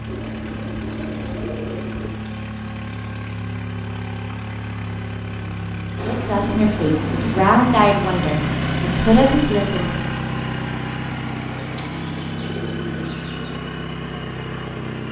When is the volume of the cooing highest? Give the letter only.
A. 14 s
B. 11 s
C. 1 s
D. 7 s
D.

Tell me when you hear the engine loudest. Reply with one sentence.
The volume of the engine peaks at 9 seconds.